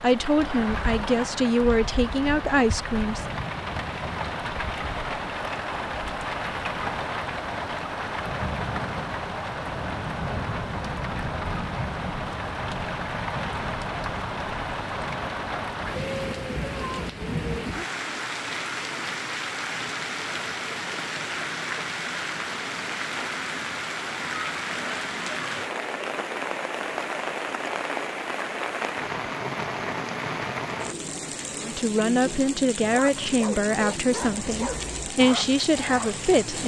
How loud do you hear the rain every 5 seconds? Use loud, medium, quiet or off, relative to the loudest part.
loud, loud, loud, loud, loud, loud, loud, medium.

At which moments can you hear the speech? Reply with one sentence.
The speech can be heard from 0.0 to 3.2 s and from 31.6 to 36.6 s.